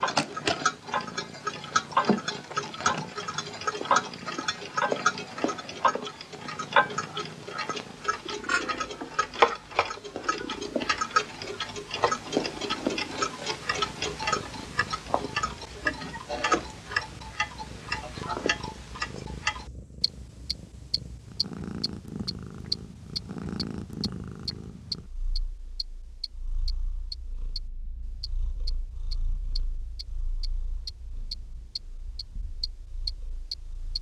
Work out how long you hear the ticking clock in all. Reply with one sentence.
The ticking clock can be heard for 33 seconds in total.